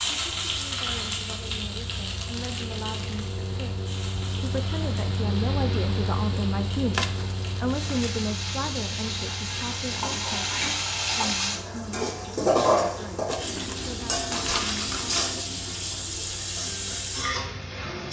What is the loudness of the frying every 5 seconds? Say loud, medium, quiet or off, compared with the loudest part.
medium, medium, loud, loud.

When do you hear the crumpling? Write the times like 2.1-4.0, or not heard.
2.0-3.3, 6.9-8.2, 13.2-15.3.